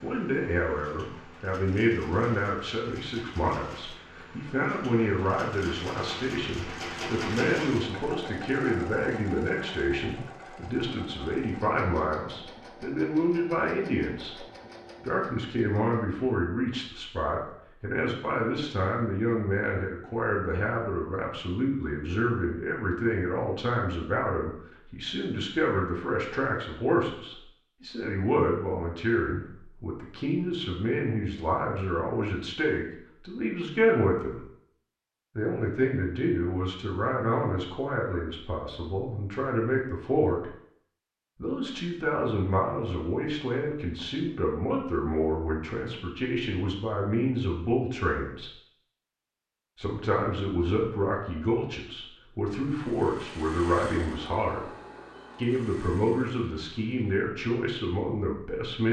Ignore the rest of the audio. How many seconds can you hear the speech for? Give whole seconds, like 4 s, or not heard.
55 s.